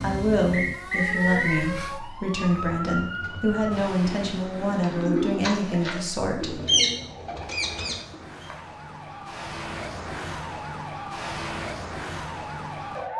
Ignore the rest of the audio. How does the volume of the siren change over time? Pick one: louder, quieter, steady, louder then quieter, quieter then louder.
quieter then louder.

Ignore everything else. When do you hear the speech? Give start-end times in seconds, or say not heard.
0.0-6.6.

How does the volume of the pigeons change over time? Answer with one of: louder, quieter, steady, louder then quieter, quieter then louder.
louder then quieter.